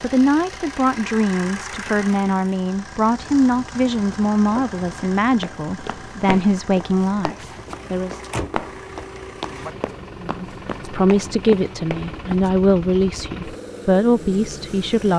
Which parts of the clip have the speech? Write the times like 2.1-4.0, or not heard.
0.0-8.2, 10.2-15.1.